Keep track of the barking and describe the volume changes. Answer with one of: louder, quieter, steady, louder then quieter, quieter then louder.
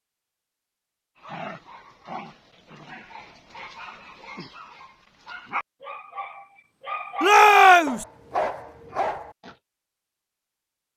louder.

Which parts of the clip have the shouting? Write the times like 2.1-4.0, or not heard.
7.2-8.1.